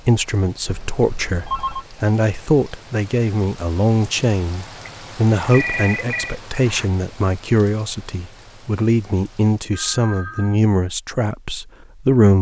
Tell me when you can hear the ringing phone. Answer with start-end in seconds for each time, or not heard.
0.7-1.9, 4.8-6.3, 9.7-10.6.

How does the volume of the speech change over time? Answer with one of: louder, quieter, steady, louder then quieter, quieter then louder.
steady.